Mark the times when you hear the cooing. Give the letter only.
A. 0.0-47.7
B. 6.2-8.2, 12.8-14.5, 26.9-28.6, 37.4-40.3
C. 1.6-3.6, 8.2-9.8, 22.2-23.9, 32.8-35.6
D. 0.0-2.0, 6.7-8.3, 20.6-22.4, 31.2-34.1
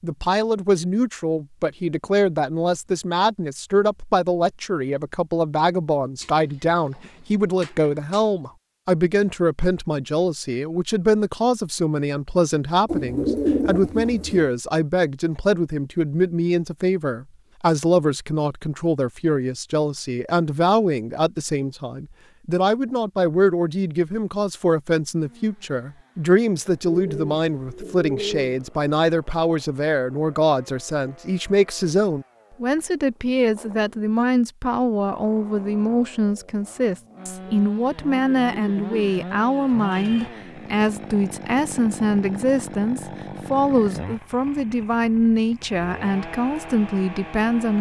B.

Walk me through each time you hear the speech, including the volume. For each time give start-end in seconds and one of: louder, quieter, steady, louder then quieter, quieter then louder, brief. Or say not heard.
0.0-47.7 steady.